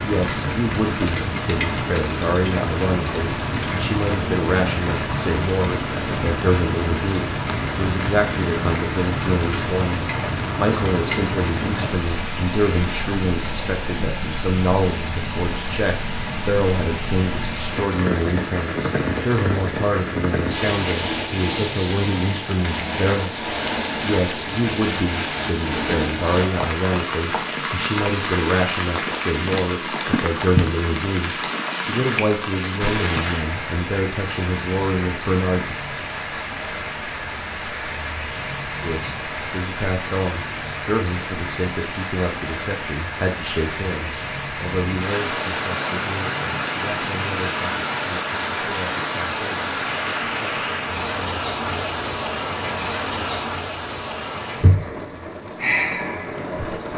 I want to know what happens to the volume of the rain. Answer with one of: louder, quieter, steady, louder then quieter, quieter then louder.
steady.